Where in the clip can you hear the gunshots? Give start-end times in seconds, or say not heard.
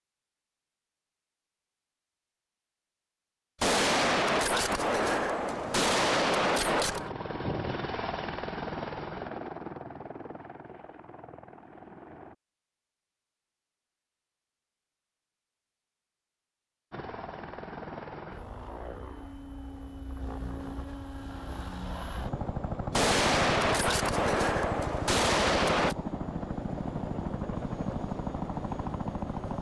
3.6-7.1, 22.9-25.9.